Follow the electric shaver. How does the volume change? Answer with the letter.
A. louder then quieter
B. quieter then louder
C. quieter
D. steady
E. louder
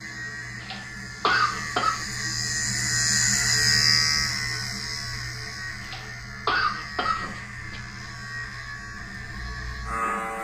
A.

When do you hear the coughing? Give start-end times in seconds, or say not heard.
0.6-2.0, 5.8-7.8.